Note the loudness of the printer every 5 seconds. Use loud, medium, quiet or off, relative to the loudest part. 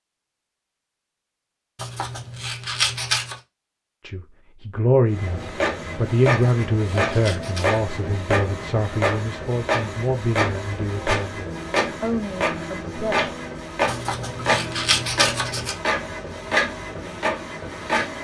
off, loud, loud, loud.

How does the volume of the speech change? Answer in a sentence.
The volume of the speech goes down.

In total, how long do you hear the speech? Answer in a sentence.
You can hear the speech for 9 seconds altogether.